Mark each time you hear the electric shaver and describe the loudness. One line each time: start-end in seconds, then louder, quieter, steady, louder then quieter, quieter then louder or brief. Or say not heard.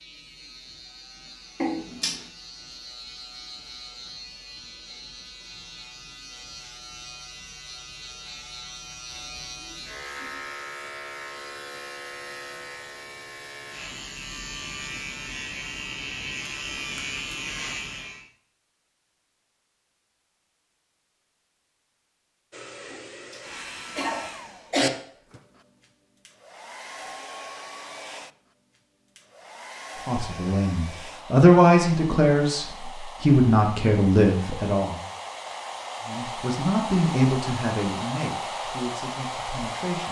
0.0-18.2 louder.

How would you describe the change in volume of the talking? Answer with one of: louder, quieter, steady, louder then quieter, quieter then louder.
quieter.